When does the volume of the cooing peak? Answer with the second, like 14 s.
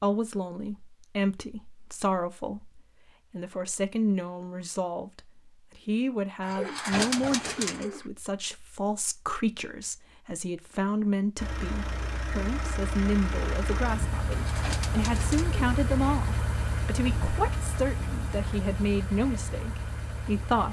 7 s.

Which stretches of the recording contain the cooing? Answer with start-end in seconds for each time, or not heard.
6.4-8.1, 14.2-15.6.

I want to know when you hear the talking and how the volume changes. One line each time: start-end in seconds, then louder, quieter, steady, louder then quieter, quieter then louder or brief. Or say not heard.
0.0-20.6 steady.